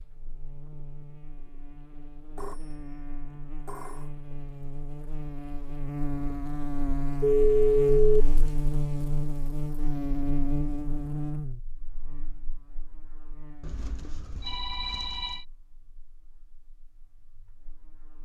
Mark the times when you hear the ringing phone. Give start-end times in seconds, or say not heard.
2.4-2.8, 3.6-4.1, 7.2-8.2, 13.6-15.4.